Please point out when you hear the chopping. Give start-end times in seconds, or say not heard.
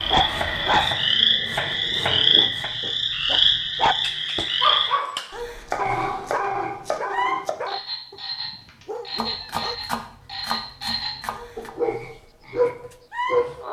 0.2-2.7, 5.7-7.5, 9.2-11.7.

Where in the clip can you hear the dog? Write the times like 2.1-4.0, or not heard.
0.1-9.8, 11.6-13.6.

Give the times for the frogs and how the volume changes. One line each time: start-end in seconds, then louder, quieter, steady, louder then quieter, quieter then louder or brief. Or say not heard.
0.0-13.6 quieter.